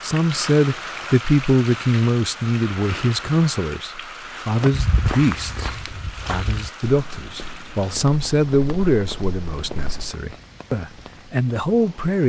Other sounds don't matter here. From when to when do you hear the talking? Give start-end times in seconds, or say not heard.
0.0-12.2.